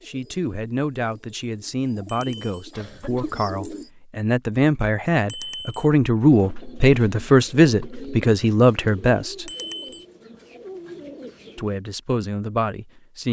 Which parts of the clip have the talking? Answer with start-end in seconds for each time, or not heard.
0.1-9.5, 11.6-13.2.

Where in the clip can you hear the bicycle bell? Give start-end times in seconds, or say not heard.
2.0-2.6, 5.2-5.8, 9.4-10.1.